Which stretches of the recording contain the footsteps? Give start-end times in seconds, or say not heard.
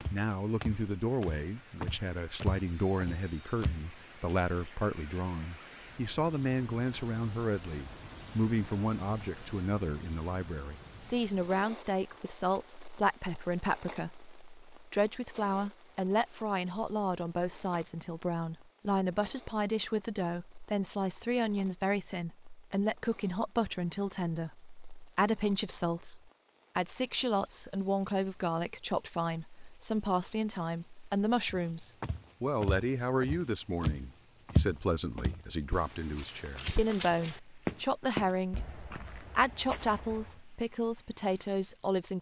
0.0-3.9, 31.5-40.4.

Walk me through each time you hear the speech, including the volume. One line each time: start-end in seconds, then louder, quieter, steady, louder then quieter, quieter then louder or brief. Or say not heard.
0.1-42.1 steady.